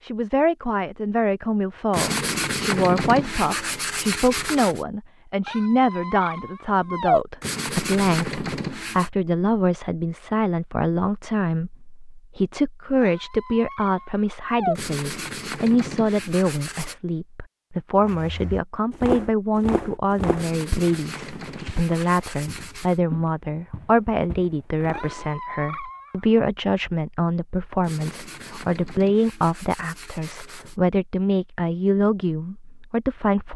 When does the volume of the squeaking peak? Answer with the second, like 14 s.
7 s.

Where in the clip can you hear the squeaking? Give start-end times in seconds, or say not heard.
5.5-7.2, 13.0-14.8, 24.9-26.4.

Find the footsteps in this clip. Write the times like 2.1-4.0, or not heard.
18.0-25.3.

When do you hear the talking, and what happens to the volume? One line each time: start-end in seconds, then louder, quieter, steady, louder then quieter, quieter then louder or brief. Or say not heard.
0.0-33.5 steady.